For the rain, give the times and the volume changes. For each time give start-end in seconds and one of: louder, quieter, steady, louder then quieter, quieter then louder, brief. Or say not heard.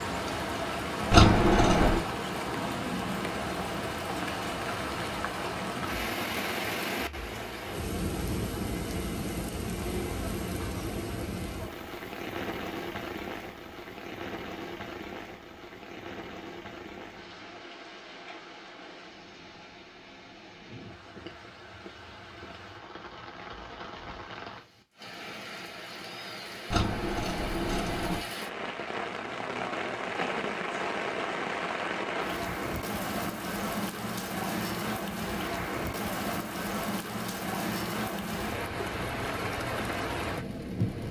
0.0-41.0 quieter then louder.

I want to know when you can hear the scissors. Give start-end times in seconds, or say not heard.
1.1-2.0, 26.7-28.2.